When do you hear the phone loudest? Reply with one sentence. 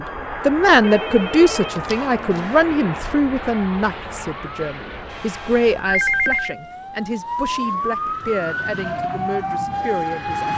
The loudest moment of the phone is at 6 seconds.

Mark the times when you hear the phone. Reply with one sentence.
The phone can be heard from 0.8 to 2.4 s and from 5.8 to 6.5 s.